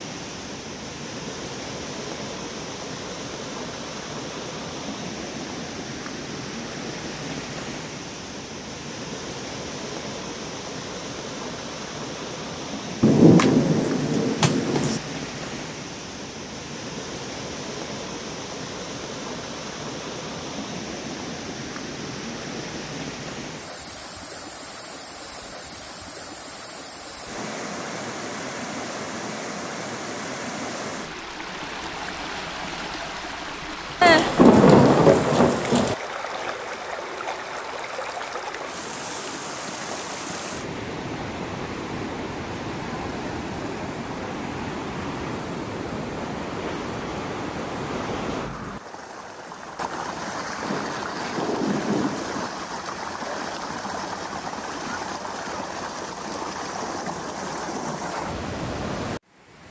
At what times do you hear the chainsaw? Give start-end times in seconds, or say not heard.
not heard.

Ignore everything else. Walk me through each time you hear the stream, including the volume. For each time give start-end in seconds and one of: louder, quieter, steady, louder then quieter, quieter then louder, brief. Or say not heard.
0.0-59.6 steady.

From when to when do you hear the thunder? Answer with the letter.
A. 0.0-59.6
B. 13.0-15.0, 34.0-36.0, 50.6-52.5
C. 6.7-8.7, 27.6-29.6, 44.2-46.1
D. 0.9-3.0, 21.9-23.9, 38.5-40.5
B.